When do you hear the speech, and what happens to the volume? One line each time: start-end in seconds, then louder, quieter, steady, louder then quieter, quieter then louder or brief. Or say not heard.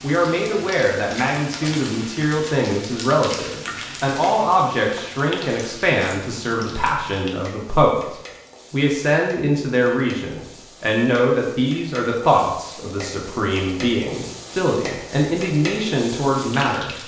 0.0-16.9 steady.